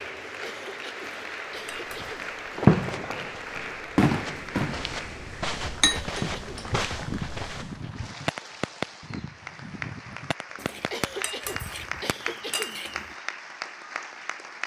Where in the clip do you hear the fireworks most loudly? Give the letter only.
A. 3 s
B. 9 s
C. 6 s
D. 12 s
A.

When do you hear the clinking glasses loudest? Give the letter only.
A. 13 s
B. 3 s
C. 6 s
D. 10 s
C.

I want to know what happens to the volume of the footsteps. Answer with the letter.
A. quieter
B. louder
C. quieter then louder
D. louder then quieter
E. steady
B.